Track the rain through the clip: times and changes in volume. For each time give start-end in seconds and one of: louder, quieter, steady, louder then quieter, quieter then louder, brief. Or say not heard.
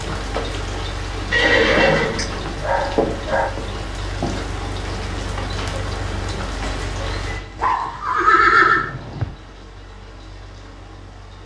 0.0-11.4 quieter.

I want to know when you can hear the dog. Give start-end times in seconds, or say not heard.
1.4-3.5, 7.6-9.3.